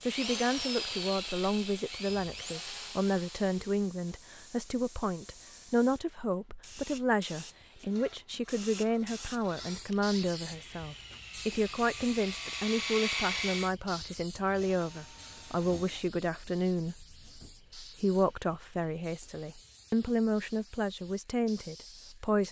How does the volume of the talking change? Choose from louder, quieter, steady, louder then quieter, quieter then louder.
steady.